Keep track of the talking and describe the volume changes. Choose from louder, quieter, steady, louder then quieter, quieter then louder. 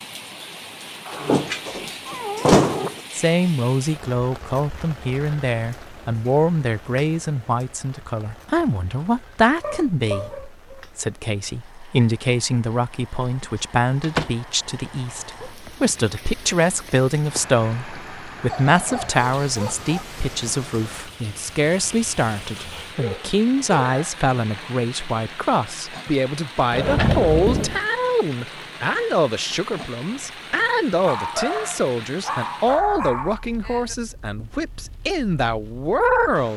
steady.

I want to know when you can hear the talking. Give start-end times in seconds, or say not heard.
3.1-36.5.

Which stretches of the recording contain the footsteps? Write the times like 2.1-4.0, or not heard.
not heard.